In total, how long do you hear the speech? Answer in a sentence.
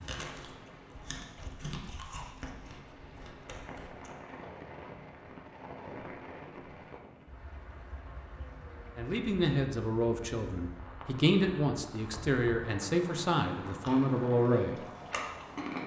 The speech can be heard for 6 seconds in total.